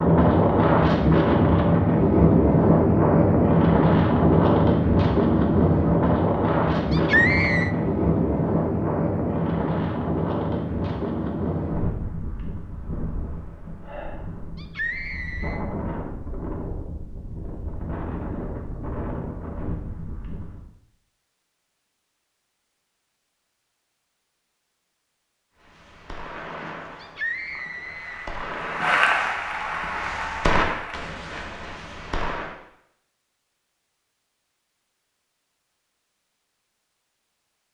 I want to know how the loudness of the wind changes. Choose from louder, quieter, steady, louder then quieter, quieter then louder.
quieter.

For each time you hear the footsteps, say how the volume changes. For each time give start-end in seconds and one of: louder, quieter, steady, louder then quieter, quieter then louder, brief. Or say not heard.
not heard.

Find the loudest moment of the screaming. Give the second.
7 s.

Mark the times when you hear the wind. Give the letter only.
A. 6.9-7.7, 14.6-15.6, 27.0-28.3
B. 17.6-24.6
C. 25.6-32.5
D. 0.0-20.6
D.